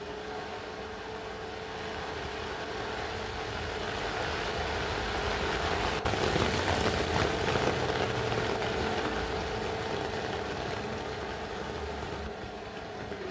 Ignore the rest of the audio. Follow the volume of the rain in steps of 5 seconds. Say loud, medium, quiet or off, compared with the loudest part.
medium, loud, medium.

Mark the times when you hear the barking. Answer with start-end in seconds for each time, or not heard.
not heard.